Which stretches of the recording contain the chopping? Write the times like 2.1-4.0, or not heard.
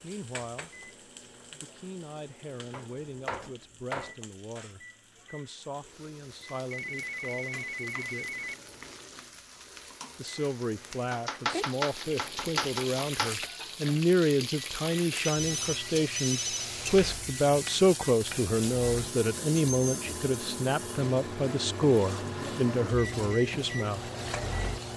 2.7-4.2, 11.1-13.3, 16.9-18.4.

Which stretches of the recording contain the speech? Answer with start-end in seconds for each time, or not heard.
0.0-0.9, 1.5-8.4, 10.2-24.1.